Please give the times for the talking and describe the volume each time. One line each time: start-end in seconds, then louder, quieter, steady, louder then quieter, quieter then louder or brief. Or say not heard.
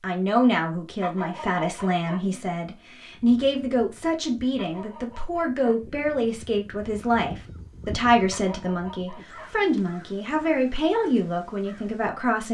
0.0-12.4 steady.